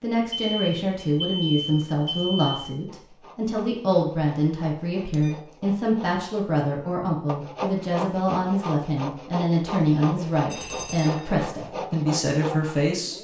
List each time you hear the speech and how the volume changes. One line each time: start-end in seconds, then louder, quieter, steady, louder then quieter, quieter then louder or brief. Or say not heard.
0.0-13.1 steady.